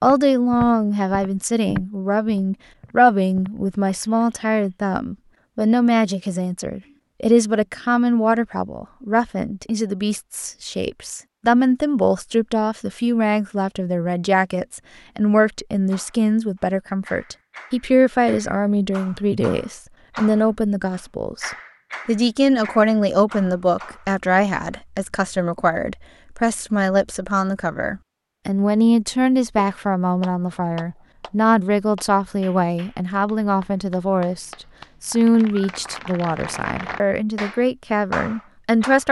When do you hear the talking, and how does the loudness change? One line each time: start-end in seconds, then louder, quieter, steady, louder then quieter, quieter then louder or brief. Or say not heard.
0.0-39.0 steady.